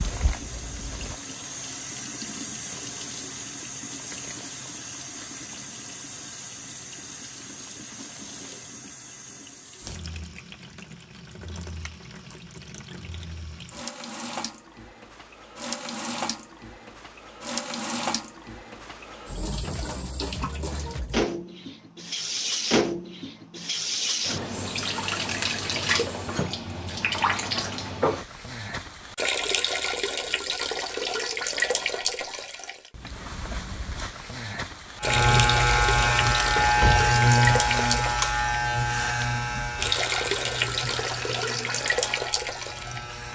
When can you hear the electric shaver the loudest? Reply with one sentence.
The loudest moment of the electric shaver is at 37 seconds.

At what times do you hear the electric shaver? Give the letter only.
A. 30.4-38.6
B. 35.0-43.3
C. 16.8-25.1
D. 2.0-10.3
B.